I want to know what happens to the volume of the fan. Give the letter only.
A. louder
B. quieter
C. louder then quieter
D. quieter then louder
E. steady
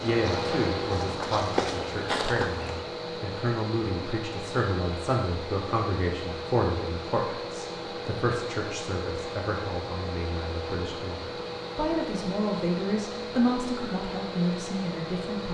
E.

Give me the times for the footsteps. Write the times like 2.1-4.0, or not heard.
0.1-2.9.